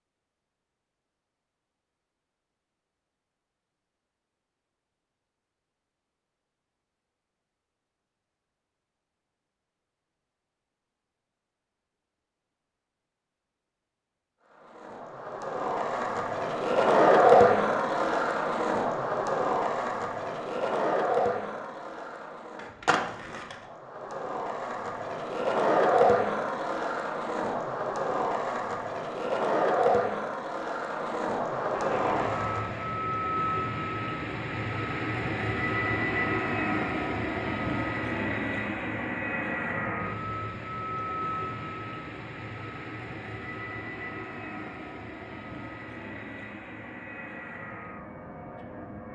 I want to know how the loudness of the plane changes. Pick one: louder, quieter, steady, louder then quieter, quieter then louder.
quieter.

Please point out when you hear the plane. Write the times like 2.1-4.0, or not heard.
31.6-49.1.